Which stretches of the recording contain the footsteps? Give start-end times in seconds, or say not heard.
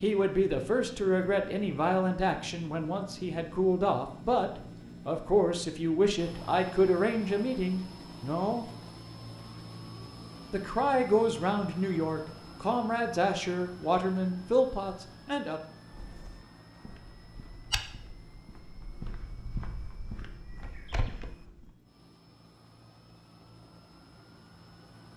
15.9-21.7.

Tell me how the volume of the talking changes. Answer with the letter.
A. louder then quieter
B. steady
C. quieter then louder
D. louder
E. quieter
B.